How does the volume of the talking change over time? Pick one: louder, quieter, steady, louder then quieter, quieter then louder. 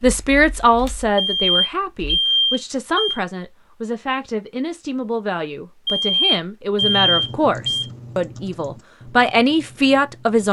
quieter then louder.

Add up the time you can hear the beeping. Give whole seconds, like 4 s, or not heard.
4 s.